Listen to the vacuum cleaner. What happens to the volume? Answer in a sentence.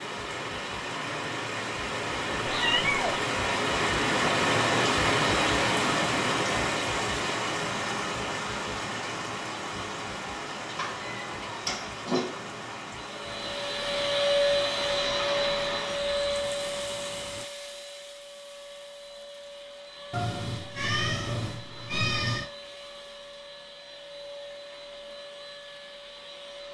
The volume of the vacuum cleaner goes down.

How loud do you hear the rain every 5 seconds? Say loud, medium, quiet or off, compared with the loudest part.
loud, loud, medium, quiet, off, off.